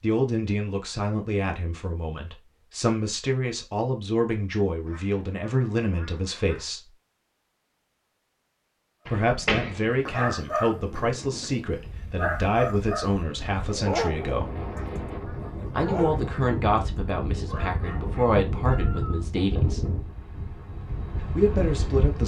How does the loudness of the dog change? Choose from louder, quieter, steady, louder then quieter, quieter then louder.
quieter.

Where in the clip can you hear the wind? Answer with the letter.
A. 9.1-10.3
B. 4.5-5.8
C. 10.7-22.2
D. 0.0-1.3
C.